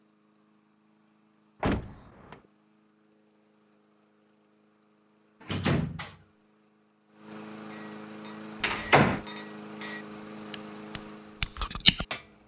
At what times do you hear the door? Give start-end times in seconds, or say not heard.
1.6-2.4, 5.4-6.2, 8.6-9.2.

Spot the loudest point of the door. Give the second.
9 s.